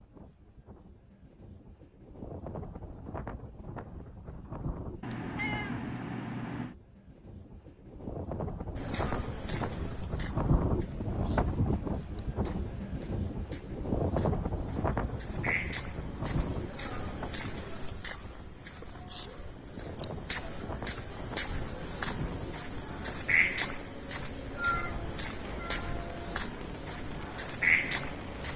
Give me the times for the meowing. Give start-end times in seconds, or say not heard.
5.0-6.8, 24.6-26.4.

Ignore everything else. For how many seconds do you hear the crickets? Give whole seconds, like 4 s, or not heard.
20 s.